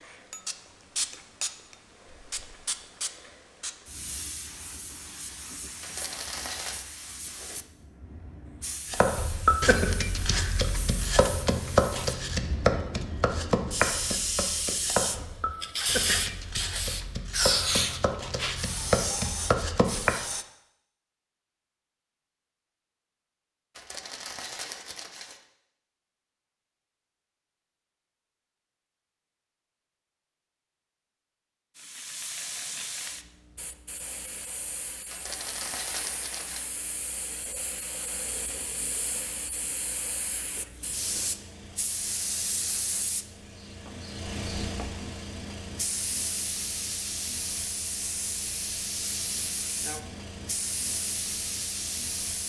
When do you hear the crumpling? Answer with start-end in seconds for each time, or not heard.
5.8-6.8, 23.8-25.4, 35.1-36.6.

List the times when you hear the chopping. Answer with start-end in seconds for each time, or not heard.
8.9-20.2.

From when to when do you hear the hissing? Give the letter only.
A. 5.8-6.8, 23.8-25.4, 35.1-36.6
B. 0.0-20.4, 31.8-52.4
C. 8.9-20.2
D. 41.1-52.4
B.